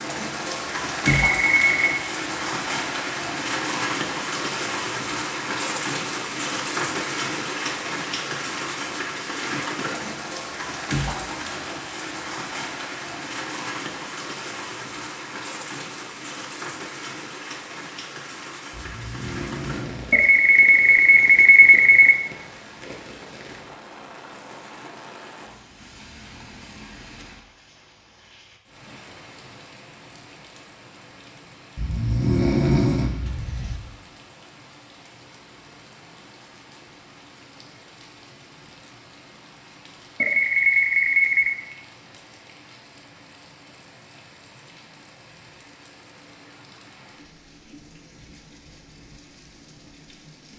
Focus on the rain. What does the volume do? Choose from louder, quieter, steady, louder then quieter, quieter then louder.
quieter.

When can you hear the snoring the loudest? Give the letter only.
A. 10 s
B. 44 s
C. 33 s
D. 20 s
C.